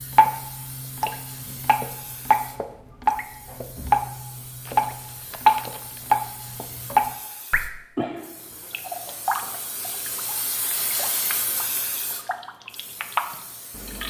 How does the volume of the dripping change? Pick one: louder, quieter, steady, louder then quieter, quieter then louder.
louder then quieter.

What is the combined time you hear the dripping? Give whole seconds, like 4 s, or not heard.
14 s.